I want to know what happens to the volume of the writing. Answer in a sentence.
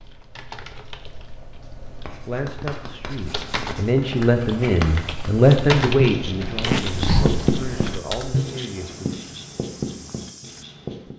The volume of the writing goes up, then down.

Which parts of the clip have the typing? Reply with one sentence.
The typing can be heard from 0.0 to 8.4 s.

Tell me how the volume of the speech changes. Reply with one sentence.
The loudness of the speech goes up, then down.